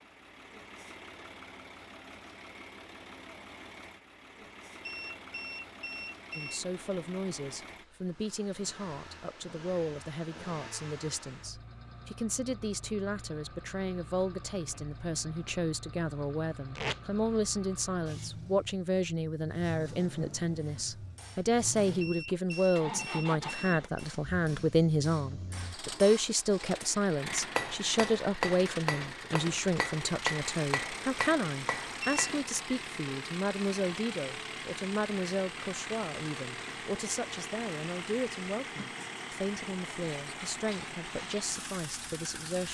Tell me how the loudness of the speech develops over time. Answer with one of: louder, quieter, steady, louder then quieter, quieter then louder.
louder then quieter.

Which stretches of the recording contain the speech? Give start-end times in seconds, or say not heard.
6.3-42.6.